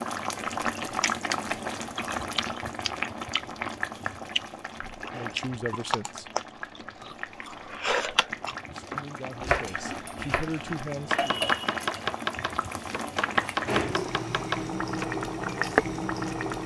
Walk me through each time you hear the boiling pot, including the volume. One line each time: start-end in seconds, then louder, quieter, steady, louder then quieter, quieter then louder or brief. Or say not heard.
0.0-16.6 quieter then louder.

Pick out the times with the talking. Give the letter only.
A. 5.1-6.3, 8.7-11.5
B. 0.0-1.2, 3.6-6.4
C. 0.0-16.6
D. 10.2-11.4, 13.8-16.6
A.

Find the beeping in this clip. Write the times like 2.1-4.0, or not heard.
not heard.